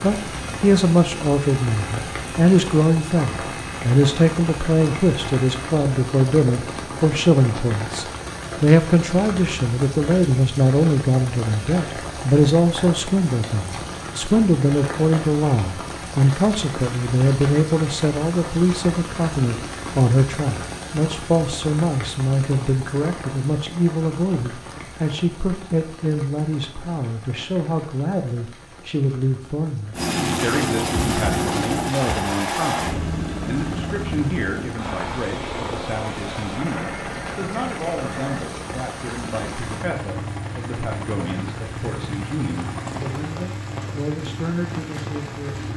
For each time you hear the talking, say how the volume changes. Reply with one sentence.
You can hear the talking from 0.0 to 45.7 s, getting quieter.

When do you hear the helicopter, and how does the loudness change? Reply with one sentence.
You can hear the helicopter from 0.0 to 6.8 s, at a steady volume; and from 29.9 to 43.4 s, getting quieter.